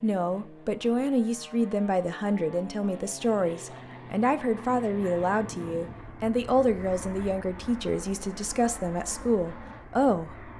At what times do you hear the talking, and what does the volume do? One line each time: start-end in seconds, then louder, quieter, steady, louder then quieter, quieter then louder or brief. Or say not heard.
0.0-10.3 steady.